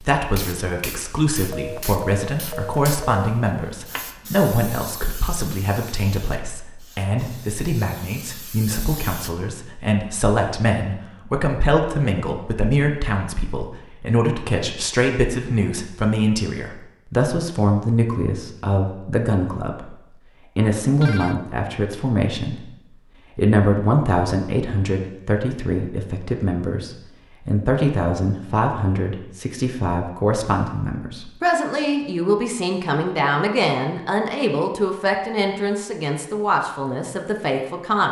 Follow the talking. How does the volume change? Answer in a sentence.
The loudness of the talking stays about the same.